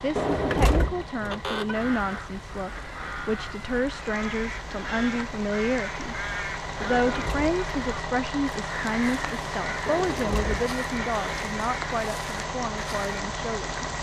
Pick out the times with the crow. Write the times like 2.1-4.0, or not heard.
1.7-13.2.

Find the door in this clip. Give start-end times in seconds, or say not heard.
0.1-2.2, 6.8-7.6, 9.8-11.4.